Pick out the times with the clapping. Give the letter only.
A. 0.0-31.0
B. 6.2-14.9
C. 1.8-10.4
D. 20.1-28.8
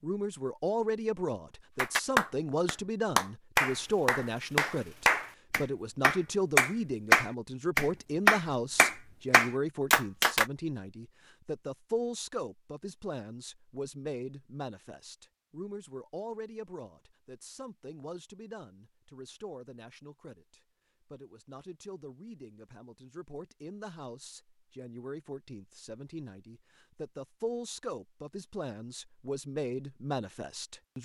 C.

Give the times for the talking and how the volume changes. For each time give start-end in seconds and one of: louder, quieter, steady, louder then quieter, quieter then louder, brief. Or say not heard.
0.0-31.0 quieter then louder.